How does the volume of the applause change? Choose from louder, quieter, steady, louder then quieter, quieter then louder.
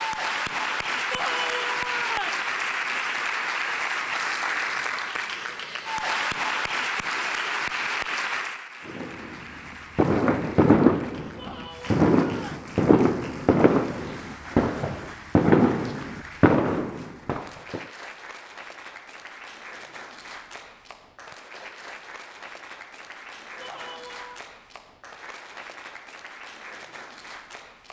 quieter.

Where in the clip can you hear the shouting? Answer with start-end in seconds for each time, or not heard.
1.1-2.5, 11.3-12.7, 23.6-24.4.